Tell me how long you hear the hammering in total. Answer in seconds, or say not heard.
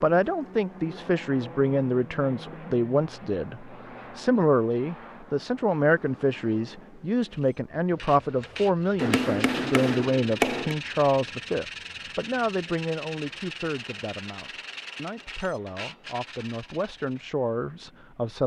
2 s.